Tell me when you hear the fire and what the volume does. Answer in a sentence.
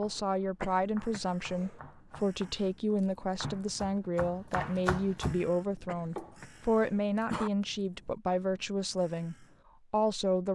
The fire can't be heard in this clip.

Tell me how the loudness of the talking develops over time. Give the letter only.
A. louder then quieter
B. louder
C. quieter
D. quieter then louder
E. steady
E.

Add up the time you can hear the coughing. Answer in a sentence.
You can hear the coughing for 3 seconds altogether.